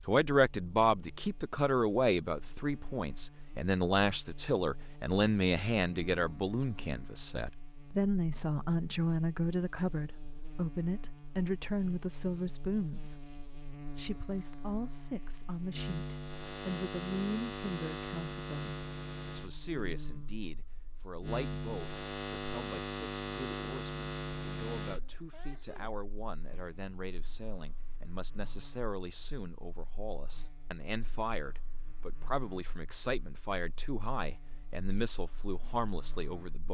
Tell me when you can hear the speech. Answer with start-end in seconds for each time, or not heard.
0.1-36.6.